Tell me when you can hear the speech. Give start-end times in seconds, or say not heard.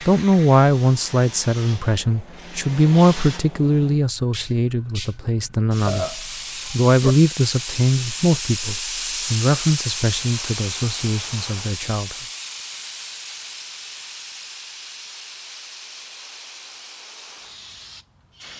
0.1-12.2.